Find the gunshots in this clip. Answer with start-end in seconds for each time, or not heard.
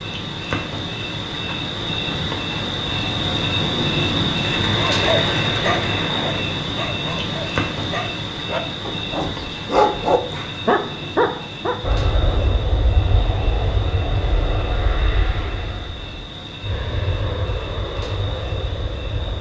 4.4-6.4.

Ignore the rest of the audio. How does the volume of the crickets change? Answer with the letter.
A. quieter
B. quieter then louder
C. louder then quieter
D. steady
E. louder
A.